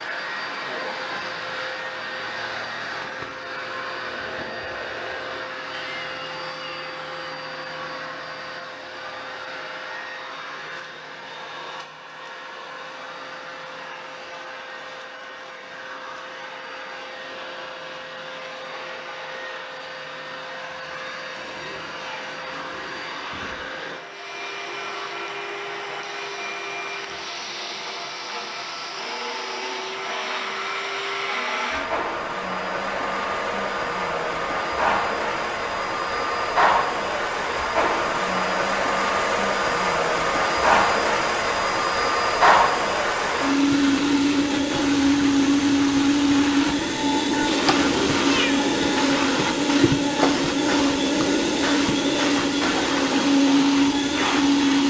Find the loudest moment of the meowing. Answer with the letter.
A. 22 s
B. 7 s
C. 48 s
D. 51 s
C.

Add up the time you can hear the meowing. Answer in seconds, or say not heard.
4 s.